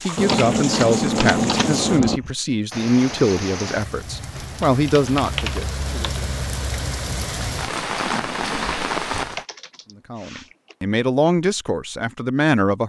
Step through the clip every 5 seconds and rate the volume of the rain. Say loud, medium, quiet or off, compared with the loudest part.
medium, loud, off.